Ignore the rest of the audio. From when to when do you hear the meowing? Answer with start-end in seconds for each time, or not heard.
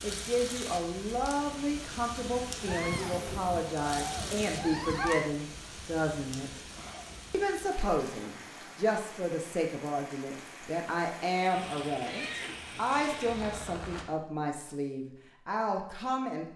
2.6-5.3, 11.5-13.8.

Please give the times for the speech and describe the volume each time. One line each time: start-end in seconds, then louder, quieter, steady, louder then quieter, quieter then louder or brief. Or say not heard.
0.0-6.6 steady
7.3-16.4 steady.